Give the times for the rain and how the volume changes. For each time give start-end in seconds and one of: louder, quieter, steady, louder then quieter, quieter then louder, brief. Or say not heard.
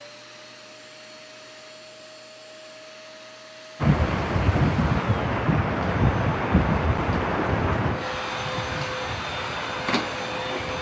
3.8-10.7 quieter.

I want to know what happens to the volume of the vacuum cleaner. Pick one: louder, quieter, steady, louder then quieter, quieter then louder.
louder.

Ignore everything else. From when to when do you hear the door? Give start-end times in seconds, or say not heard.
not heard.